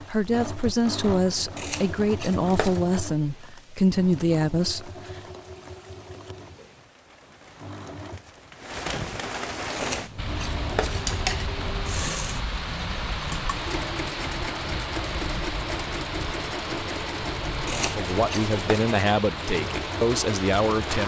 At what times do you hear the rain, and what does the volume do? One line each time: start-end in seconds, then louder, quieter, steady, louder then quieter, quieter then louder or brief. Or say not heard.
0.0-21.0 louder.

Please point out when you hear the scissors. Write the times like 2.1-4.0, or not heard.
1.6-2.8, 9.8-11.4, 17.6-18.6.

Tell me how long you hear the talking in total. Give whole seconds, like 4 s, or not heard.
8 s.